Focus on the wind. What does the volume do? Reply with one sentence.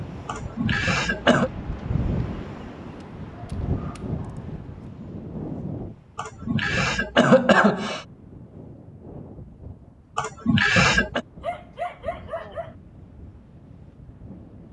The loudness of the wind goes down.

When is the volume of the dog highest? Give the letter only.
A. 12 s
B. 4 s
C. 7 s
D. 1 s
A.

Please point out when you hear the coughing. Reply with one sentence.
The coughing can be heard from 0.2 to 1.5 s, from 6.2 to 8.1 s and from 10.2 to 11.2 s.